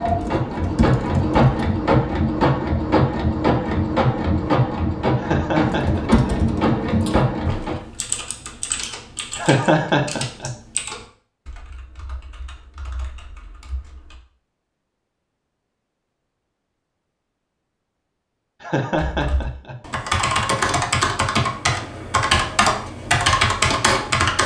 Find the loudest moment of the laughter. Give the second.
10 s.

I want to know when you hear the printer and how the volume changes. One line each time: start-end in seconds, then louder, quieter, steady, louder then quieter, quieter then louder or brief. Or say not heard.
0.0-7.8 steady.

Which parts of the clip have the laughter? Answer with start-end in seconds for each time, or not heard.
5.2-6.3, 9.3-10.5, 18.6-19.8.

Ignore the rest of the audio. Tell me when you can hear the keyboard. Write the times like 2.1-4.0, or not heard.
0.0-1.4, 5.6-14.2, 19.1-24.4.